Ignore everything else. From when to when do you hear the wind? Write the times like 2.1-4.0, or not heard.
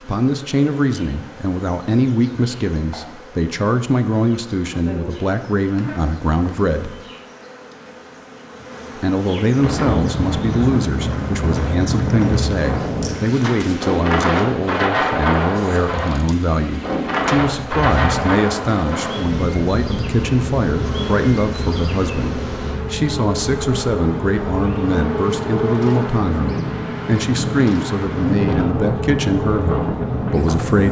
9.6-30.8.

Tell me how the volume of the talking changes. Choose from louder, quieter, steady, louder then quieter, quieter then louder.
steady.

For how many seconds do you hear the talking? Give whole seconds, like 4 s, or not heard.
29 s.